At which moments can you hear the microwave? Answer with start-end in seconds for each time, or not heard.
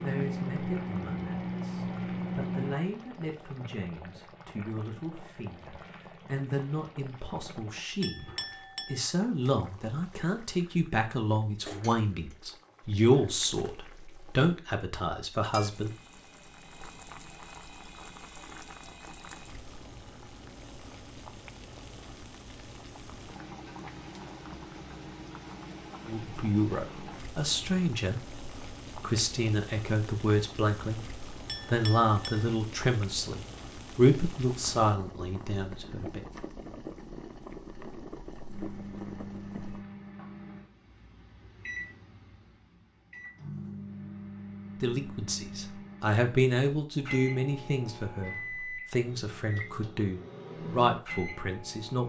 0.0-2.8, 38.5-52.0.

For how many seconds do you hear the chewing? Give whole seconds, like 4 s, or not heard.
not heard.